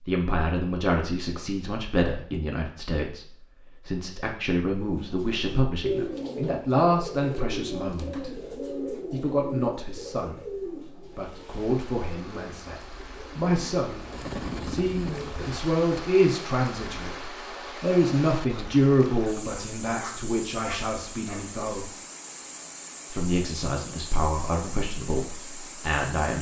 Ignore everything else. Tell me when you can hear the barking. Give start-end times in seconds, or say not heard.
19.6-21.5.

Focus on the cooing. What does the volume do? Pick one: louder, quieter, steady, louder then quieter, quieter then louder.
quieter then louder.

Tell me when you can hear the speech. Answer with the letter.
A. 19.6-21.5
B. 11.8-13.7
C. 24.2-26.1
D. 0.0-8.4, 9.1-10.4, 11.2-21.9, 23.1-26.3
D.